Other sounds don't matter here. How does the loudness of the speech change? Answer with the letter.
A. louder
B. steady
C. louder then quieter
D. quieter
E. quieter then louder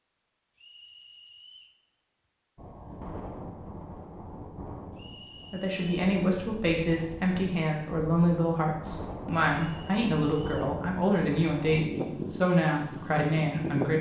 B.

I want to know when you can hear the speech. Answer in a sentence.
You can hear the speech from 5.5 to 13.9 s.